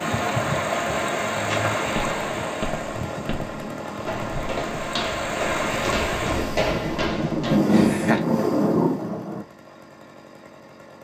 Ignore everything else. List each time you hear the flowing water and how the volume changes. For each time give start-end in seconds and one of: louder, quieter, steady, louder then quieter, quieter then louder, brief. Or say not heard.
0.0-6.5 quieter then louder.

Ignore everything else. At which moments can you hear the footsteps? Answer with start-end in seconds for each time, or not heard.
1.3-8.1.